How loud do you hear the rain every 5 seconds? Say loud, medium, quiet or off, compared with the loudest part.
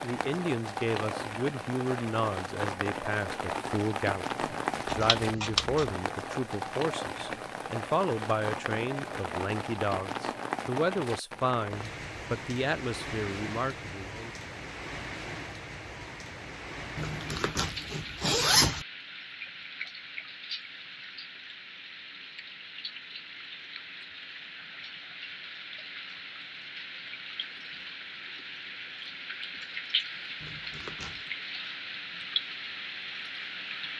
loud, loud, loud, medium, medium, medium, loud.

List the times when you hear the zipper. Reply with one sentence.
You can hear the zipper from 4.4 to 5.5 s, from 16.9 to 18.9 s and from 30.4 to 31.3 s.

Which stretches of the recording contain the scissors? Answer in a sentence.
The scissors can be heard from 4.9 to 6.0 s.